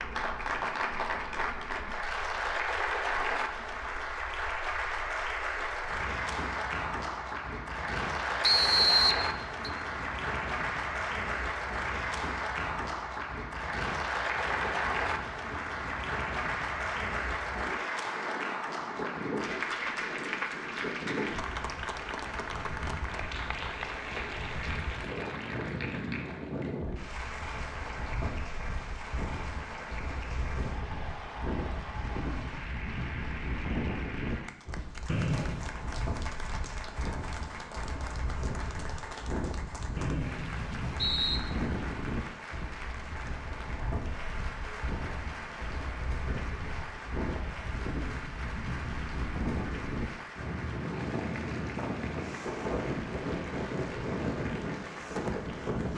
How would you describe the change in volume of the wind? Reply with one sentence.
The volume of the wind goes up.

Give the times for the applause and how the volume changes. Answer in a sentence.
You can hear the applause from 0.0 to 55.9 s, getting quieter.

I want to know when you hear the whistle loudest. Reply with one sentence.
The loudest moment of the whistle is at 9 seconds.